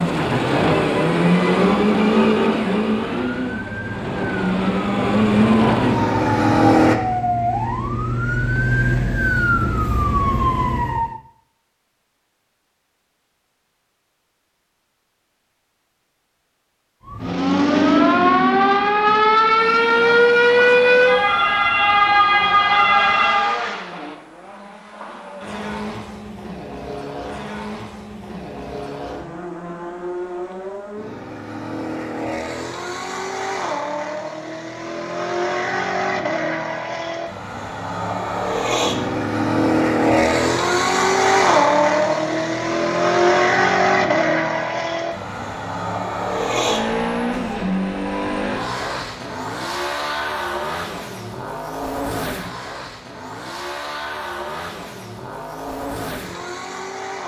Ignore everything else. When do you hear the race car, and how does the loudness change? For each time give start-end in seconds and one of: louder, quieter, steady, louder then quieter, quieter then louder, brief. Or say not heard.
0.0-7.0 quieter then louder
19.6-57.2 louder then quieter.